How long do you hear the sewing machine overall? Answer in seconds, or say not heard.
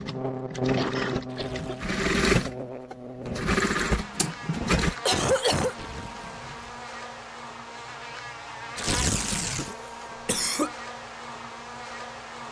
5 s.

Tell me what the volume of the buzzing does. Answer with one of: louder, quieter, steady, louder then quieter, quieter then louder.
quieter.